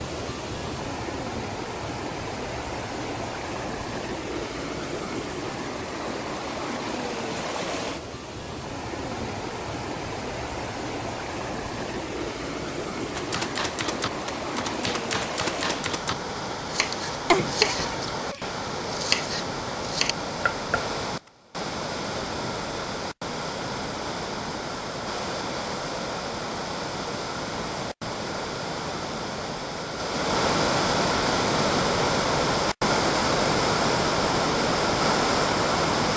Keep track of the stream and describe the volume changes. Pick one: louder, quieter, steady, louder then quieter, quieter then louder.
louder.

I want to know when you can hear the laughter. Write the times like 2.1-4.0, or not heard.
17.3-18.5.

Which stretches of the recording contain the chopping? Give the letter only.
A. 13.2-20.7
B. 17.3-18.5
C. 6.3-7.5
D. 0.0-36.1
A.